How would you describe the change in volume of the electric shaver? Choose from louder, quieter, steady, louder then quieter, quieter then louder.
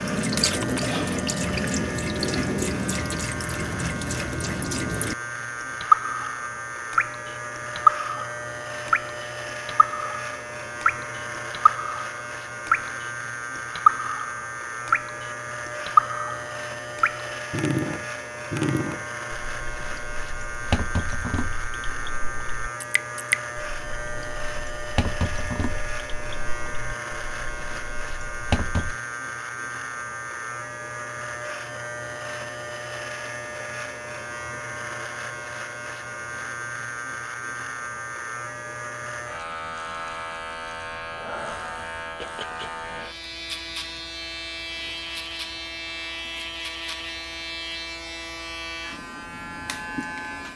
steady.